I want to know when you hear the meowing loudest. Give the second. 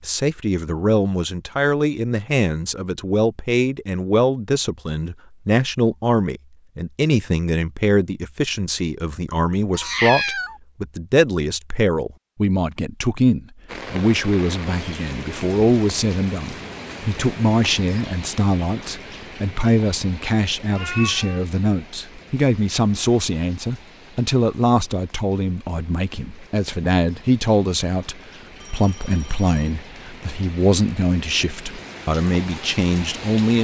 10 s.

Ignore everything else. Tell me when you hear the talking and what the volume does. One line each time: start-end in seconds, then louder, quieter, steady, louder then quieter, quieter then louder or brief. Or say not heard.
0.0-33.6 steady.